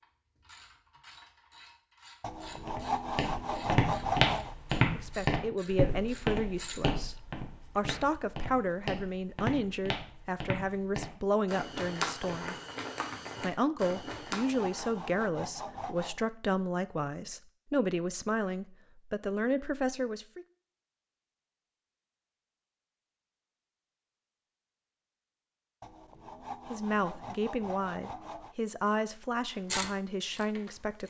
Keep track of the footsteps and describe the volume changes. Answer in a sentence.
The loudness of the footsteps goes down.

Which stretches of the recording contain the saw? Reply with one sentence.
You can hear the saw from 2.2 to 4.5 s, from 13.9 to 16.2 s and from 25.8 to 28.6 s.